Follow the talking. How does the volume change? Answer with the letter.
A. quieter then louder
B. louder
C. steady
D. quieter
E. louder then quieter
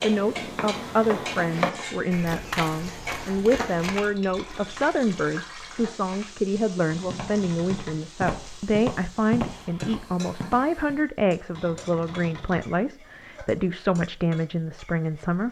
C.